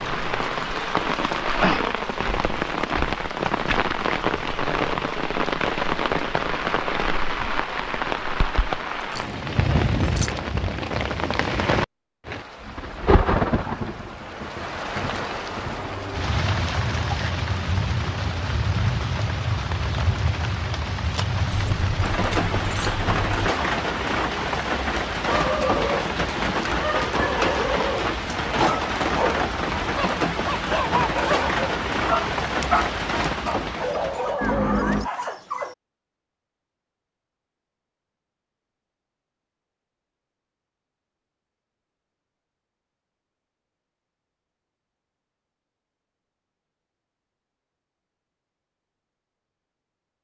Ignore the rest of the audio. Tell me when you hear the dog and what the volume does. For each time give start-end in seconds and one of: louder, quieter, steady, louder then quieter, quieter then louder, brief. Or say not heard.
25.2-35.8 steady.